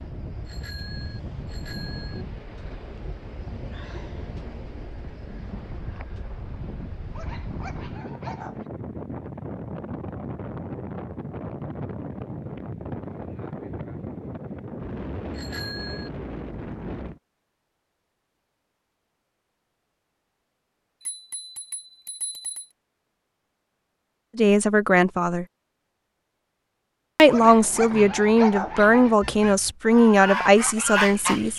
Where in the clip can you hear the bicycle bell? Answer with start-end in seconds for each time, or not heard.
0.5-2.2, 15.3-16.1, 21.0-22.7.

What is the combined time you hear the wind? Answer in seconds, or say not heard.
17 s.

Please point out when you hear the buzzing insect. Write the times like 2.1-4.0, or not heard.
not heard.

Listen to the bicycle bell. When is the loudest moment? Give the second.
16 s.